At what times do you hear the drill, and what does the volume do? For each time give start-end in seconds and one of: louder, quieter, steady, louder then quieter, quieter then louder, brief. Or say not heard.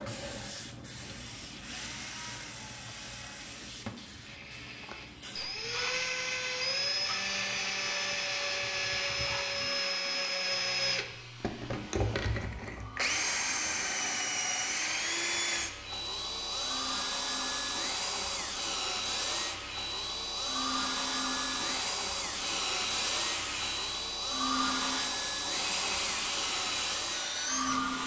0.0-28.0 louder.